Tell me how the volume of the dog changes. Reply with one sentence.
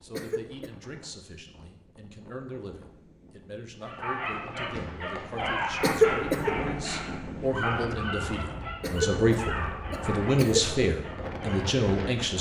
The loudness of the dog goes down.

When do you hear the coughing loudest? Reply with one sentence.
The loudest moment of the coughing is at 6 seconds.